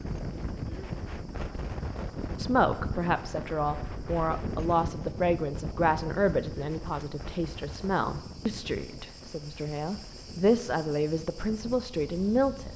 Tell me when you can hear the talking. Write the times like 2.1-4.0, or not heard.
2.4-12.7.